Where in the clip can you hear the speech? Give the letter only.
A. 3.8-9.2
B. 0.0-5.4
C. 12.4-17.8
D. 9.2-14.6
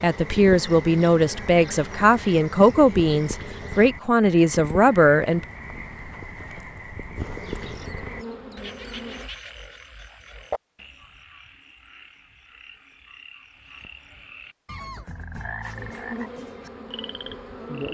B.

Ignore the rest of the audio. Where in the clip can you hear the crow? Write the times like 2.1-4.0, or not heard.
not heard.